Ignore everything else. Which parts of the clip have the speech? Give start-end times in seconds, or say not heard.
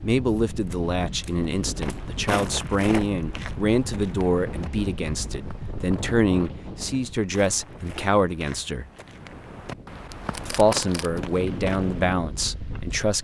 0.0-8.9, 10.4-13.1.